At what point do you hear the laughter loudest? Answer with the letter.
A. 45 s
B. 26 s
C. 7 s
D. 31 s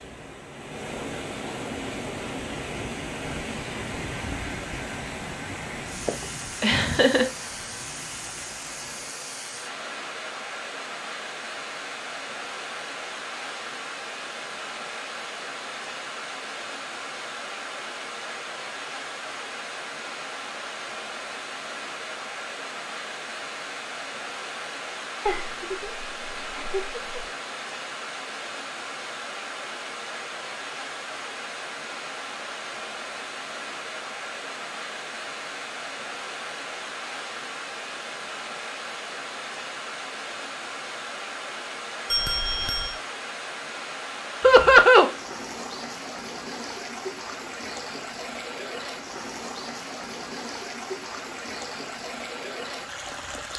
A.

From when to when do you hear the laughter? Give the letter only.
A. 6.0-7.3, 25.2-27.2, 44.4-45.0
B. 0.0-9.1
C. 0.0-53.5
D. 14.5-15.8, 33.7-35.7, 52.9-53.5
A.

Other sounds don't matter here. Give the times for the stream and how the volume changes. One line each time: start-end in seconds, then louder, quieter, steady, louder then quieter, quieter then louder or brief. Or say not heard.
0.0-53.5 steady.